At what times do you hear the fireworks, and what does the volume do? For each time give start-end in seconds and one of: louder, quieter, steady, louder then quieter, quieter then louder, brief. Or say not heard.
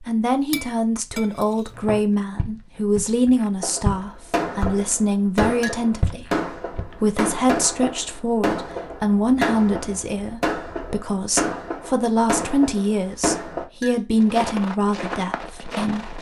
3.6-13.7 steady.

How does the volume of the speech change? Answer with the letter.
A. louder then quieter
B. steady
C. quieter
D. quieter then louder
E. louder
B.